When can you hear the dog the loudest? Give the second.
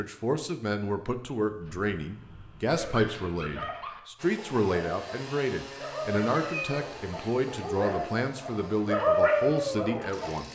9 s.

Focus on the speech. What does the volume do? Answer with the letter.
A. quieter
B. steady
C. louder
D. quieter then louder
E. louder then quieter
B.